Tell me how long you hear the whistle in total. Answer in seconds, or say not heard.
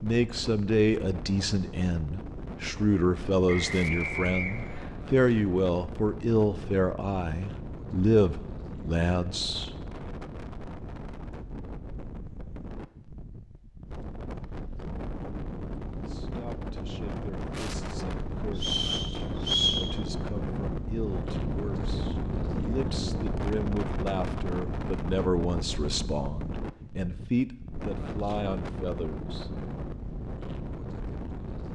3 s.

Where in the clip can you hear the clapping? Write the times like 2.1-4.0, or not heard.
not heard.